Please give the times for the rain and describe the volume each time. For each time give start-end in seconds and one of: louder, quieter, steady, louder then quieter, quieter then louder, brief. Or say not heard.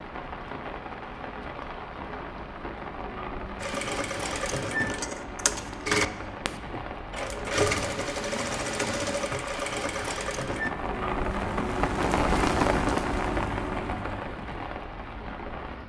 0.0-15.8 louder.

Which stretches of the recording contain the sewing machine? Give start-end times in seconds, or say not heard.
3.6-10.7.